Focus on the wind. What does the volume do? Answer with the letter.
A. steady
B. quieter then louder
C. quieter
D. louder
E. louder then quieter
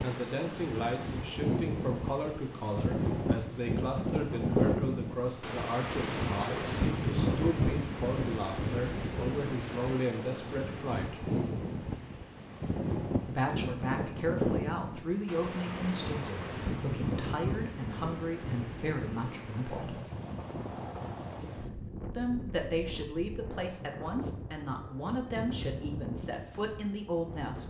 C.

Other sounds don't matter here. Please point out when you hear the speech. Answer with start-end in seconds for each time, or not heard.
0.0-11.2, 13.2-20.0, 22.1-27.6.